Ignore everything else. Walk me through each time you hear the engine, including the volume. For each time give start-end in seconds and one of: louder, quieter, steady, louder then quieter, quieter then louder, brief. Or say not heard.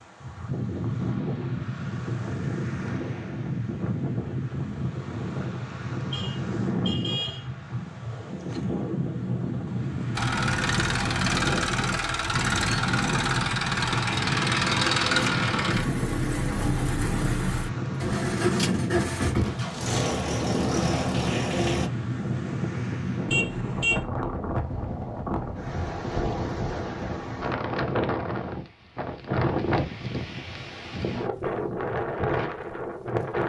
10.2-21.9 steady.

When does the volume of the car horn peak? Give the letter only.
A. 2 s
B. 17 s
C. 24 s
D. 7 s
C.